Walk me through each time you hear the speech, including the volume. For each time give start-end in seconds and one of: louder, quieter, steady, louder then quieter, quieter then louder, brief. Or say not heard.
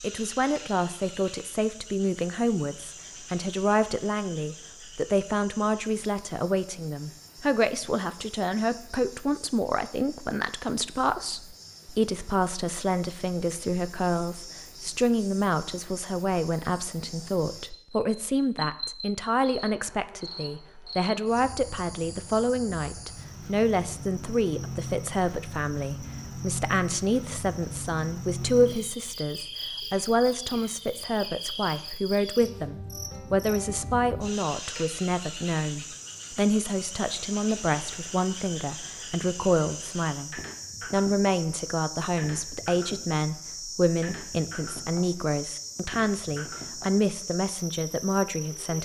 0.0-48.8 steady.